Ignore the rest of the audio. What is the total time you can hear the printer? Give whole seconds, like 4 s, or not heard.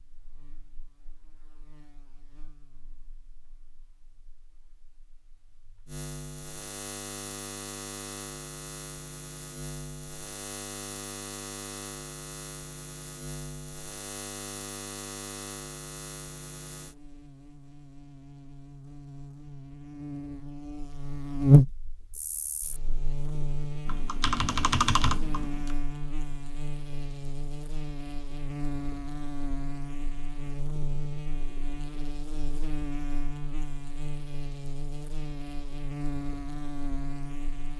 not heard.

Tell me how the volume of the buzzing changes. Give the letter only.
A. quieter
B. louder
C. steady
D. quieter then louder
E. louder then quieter
E.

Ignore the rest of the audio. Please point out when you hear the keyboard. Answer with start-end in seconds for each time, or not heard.
23.9-25.8.